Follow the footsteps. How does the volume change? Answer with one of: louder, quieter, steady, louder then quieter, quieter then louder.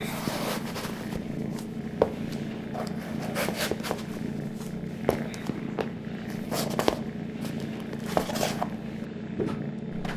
quieter then louder.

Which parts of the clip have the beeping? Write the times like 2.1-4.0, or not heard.
not heard.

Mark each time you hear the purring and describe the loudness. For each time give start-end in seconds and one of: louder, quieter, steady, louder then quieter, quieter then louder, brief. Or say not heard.
0.0-10.1 steady.